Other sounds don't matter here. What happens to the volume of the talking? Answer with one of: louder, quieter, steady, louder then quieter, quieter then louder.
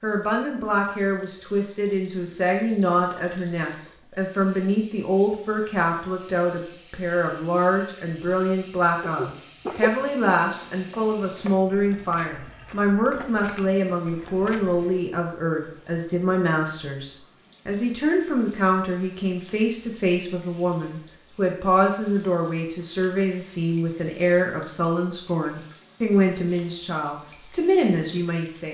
steady.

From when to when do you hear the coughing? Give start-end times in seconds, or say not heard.
9.0-9.9.